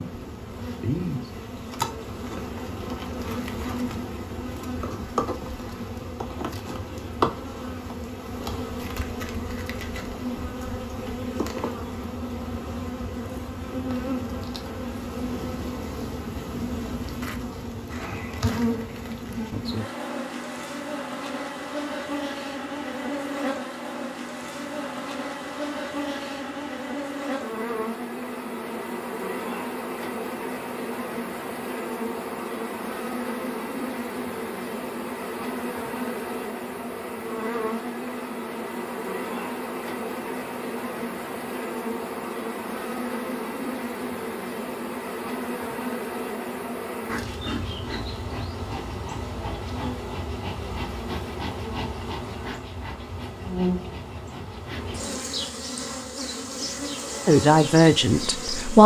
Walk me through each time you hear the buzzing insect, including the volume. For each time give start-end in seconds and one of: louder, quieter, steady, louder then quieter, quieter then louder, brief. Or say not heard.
0.0-58.8 steady.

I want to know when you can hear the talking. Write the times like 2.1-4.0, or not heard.
57.2-58.8.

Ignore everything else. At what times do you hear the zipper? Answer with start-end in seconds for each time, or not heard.
not heard.